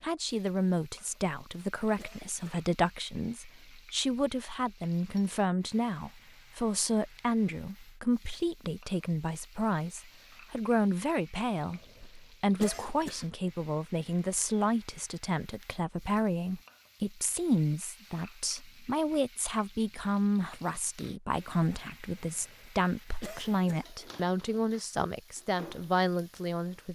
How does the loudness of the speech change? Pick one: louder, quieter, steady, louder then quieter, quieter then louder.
steady.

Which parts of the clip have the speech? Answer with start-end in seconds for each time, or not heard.
0.0-26.8.